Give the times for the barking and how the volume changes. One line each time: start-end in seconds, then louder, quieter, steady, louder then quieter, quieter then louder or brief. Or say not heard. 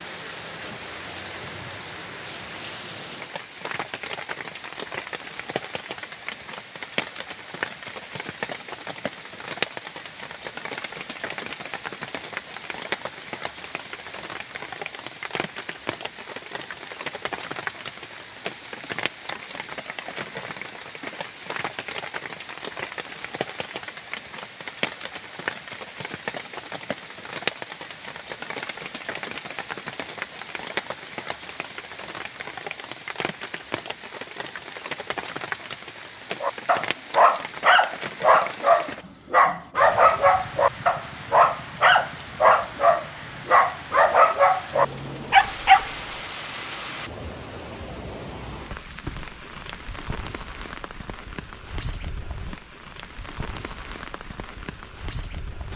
36.4-45.9 steady.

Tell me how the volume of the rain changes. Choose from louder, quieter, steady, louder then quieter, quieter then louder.
steady.